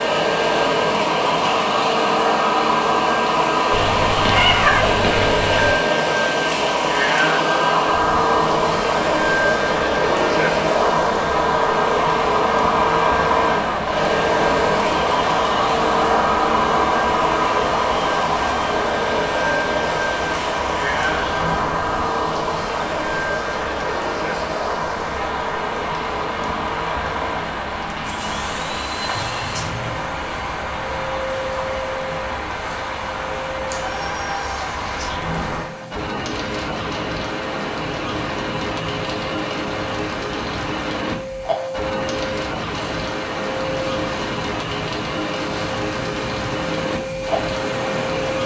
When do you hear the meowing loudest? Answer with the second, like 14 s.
5 s.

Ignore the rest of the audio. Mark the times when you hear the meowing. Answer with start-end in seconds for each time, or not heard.
3.7-5.7, 29.1-29.9, 33.7-35.1.